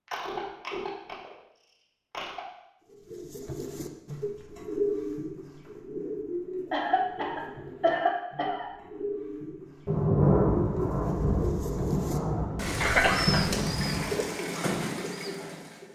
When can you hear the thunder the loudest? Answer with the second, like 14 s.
10 s.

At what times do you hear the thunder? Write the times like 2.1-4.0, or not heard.
9.8-14.1.